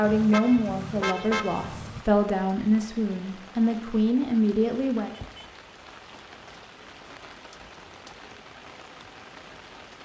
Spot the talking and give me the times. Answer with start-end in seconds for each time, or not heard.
0.0-5.2.